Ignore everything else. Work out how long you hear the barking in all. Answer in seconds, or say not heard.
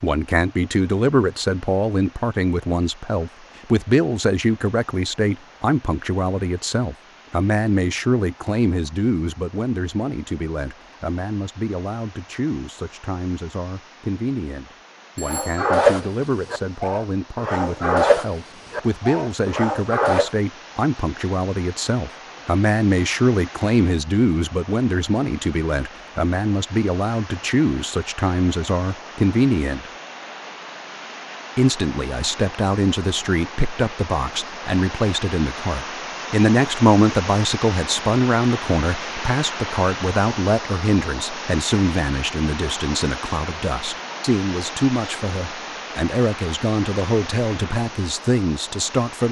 5 s.